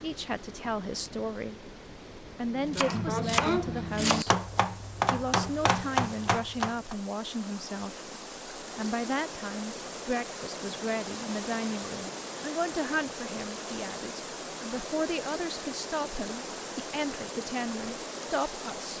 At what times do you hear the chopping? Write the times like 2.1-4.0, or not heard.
2.5-7.0.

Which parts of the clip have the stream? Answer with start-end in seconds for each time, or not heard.
0.0-18.9.